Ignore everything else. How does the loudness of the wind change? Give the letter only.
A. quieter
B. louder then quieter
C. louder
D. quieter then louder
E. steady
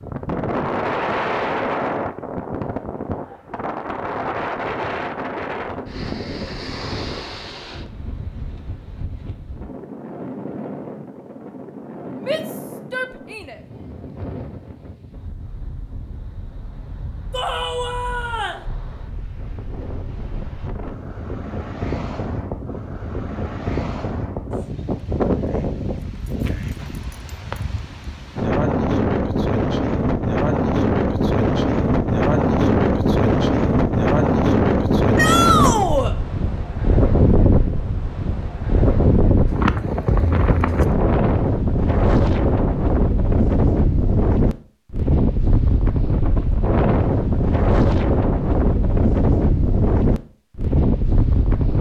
D.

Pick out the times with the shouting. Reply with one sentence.
You can hear the shouting from 12.2 to 13.6 s, from 17.3 to 18.6 s and from 35.1 to 36.1 s.